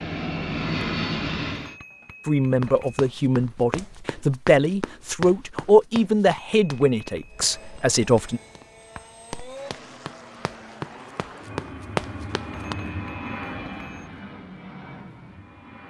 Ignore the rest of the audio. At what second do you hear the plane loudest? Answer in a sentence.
The loudest moment of the plane is at 1 second.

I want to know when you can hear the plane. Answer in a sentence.
You can hear the plane from 0.0 to 1.8 s and from 7.2 to 15.8 s.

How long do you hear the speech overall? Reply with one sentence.
You can hear the speech for 6 seconds altogether.